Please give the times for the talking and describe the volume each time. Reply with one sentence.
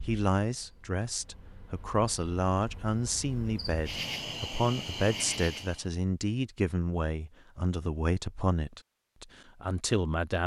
The talking can be heard from 0.0 to 10.4 s, at a steady volume.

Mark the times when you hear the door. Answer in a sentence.
The door can't be heard in this clip.